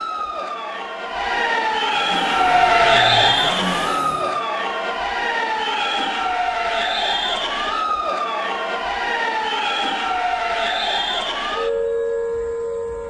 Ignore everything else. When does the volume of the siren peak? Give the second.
3 s.